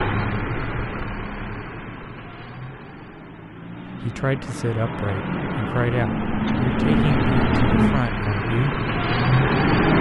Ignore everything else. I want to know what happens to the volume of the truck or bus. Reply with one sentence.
The volume of the truck or bus goes down, then up.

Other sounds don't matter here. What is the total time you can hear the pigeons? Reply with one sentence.
You can't hear the pigeons here.